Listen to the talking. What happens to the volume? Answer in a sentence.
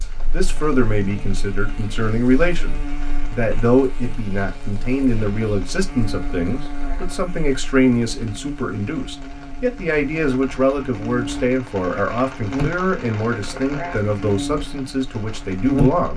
The loudness of the talking stays about the same.